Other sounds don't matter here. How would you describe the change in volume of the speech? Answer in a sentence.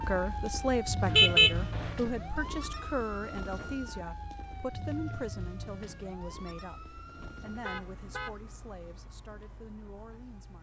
The loudness of the speech goes down.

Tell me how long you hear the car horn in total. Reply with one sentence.
The car horn can be heard for 2 seconds in total.